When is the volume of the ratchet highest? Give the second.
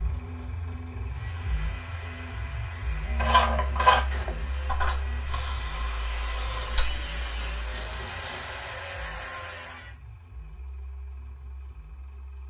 4 s.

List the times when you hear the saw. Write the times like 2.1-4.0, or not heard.
1.0-9.9.